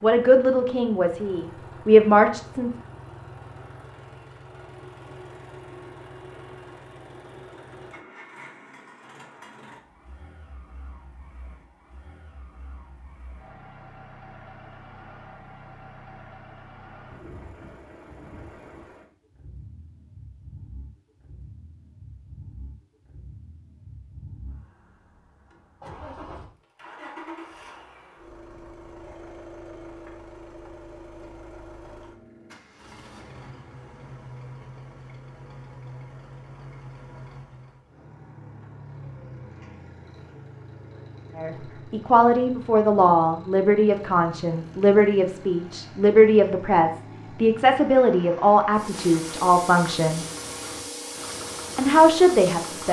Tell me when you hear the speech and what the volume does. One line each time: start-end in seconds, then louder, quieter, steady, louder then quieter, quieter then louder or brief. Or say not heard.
0.0-2.7 brief
41.4-50.2 steady
51.8-52.8 brief.